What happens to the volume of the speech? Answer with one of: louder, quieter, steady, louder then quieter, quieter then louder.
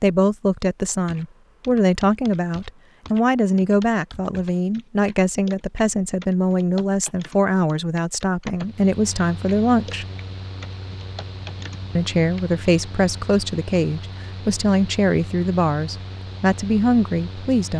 steady.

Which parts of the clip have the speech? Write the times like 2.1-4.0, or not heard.
0.0-10.1, 11.9-17.7.